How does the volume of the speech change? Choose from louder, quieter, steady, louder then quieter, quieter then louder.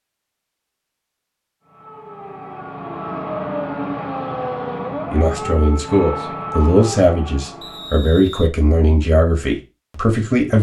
steady.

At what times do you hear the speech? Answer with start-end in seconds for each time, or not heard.
5.1-10.5.